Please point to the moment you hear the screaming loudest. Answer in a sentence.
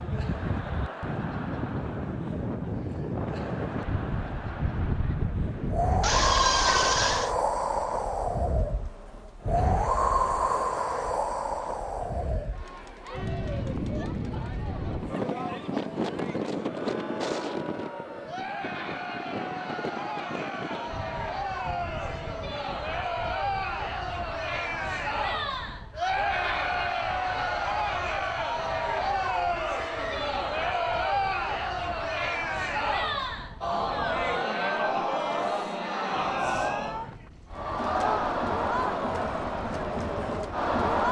The volume of the screaming peaks at 7 seconds.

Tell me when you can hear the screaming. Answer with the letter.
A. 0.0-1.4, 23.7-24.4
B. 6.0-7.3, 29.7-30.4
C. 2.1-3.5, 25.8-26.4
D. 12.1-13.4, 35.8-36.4
B.